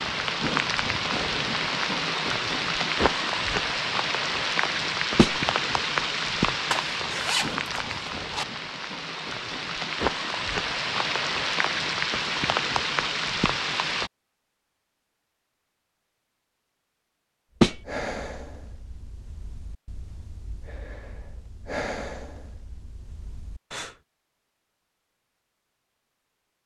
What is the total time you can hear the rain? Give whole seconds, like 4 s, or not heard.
14 s.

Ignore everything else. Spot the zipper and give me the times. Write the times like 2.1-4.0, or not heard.
6.7-8.4.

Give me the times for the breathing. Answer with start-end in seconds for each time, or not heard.
17.6-23.9.